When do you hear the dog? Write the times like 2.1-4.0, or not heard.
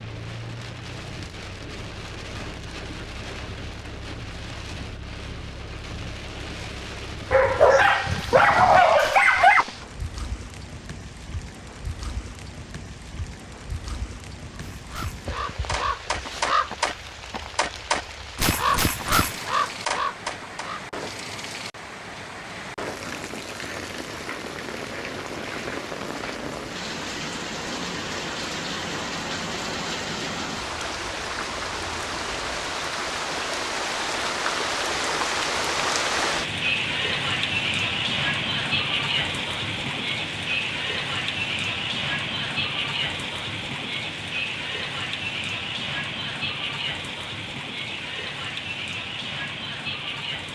7.3-9.7.